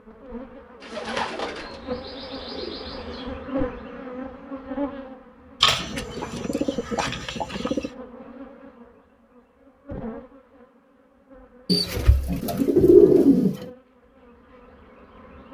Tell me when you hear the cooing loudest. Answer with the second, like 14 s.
13 s.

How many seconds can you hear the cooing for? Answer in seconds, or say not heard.
7 s.